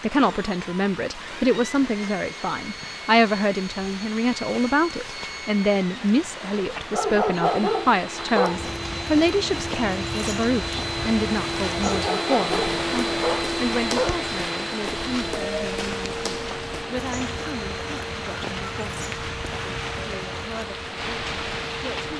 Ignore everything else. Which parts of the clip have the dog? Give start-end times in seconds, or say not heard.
6.9-8.7, 11.8-14.2.